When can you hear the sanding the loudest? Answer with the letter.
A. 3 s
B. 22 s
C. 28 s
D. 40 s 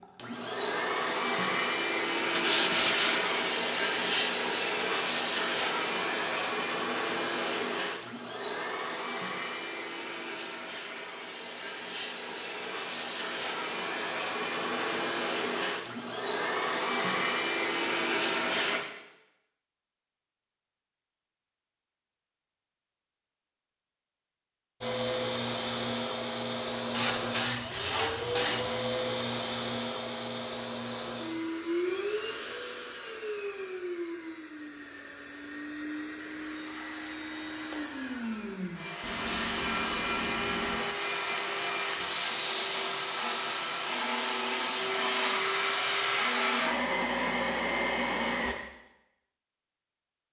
A.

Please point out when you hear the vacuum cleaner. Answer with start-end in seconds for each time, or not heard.
0.0-18.8, 24.8-48.5.